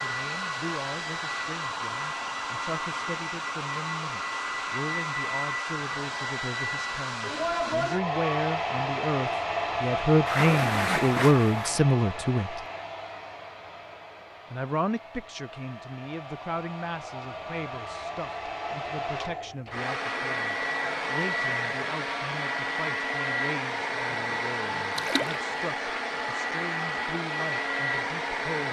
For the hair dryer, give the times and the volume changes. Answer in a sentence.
The hair dryer can be heard from 0.0 to 28.6 s, getting quieter then louder.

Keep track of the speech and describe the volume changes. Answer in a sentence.
The volume of the speech goes up, then down.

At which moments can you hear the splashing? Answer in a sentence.
The splashing can be heard from 10.2 to 11.8 s and from 24.9 to 25.4 s.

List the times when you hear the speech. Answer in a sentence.
The speech can be heard from 0.0 to 12.6 s and from 14.5 to 28.6 s.